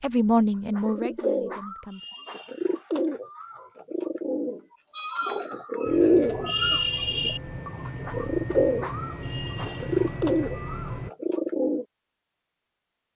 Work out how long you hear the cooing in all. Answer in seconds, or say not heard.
11 s.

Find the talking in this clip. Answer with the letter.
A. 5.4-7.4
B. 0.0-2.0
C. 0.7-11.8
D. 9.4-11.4
B.